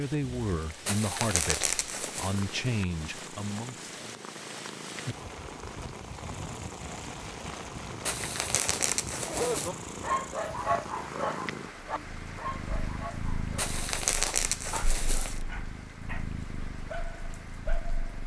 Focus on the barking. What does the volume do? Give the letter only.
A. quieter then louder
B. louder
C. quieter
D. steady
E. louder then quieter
C.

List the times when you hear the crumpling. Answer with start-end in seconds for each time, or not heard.
0.8-2.5, 8.1-9.7, 13.6-15.4.